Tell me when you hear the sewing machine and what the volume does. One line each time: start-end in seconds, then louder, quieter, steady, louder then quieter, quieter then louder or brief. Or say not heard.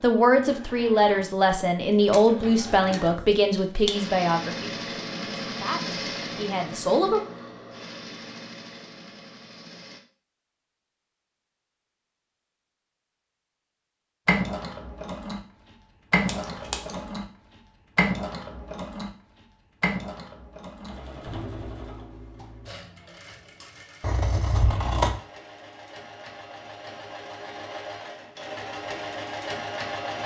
0.1-10.0 louder then quieter
14.2-30.2 quieter then louder.